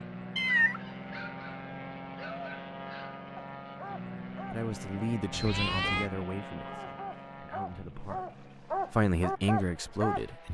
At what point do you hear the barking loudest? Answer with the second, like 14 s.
9 s.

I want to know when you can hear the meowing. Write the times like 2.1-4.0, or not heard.
0.3-0.8, 5.3-6.1.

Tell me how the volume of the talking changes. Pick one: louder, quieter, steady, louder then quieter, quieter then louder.
quieter then louder.